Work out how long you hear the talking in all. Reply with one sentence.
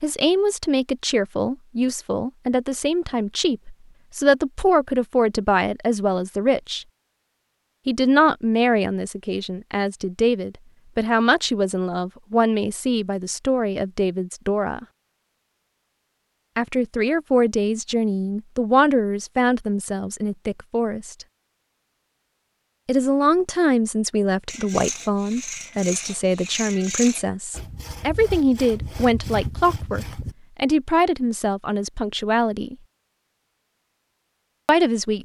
You can hear the talking for 29 seconds altogether.